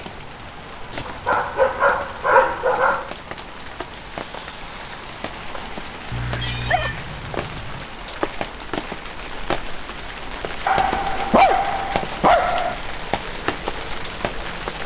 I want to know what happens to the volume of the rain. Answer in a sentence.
The volume of the rain goes up.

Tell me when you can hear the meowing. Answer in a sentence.
You can hear the meowing from 6.1 to 7.8 s.